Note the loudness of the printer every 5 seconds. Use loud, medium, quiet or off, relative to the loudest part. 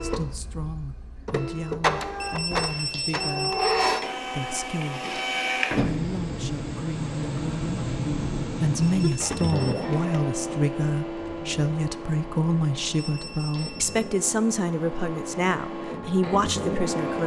loud, loud, medium, loud.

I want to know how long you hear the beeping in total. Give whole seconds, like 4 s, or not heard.
4 s.